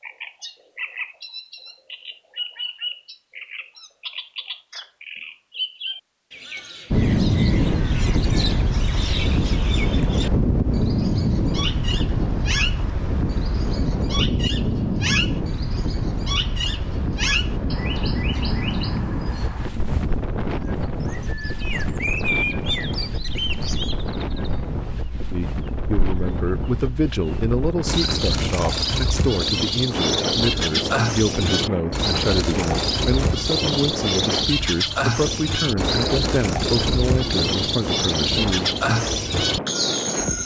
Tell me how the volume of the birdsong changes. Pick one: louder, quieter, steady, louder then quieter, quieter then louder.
louder.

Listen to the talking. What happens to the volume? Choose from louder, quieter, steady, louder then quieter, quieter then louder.
steady.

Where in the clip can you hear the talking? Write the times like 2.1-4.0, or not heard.
25.3-38.7.